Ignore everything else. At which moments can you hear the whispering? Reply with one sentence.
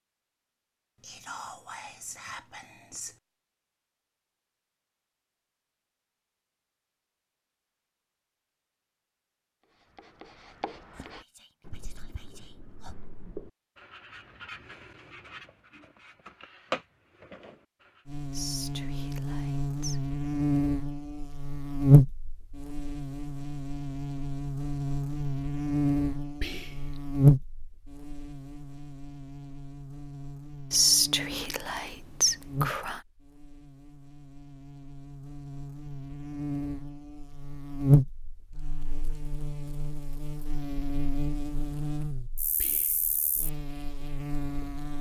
The whispering can be heard from 1.0 to 3.1 s, from 10.9 to 12.9 s, from 18.3 to 20.0 s, from 26.4 to 27.1 s, from 30.7 to 33.0 s and from 42.6 to 43.2 s.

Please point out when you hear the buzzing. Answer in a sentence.
The buzzing can be heard from 18.1 to 44.9 s.